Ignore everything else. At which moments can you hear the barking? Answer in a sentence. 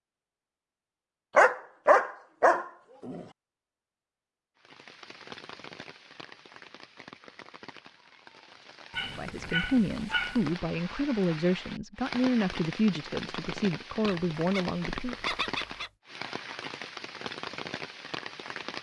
You can hear the barking from 1.4 to 3.2 s, from 8.9 to 10.4 s and from 14.1 to 15.9 s.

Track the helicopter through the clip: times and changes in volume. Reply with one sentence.
The helicopter can't be heard in this clip.